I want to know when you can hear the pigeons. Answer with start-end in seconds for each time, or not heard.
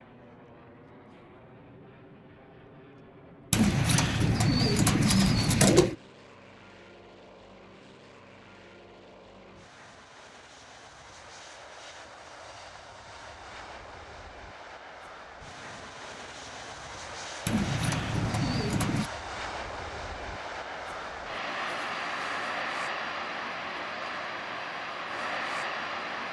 3.5-6.0, 17.4-19.1.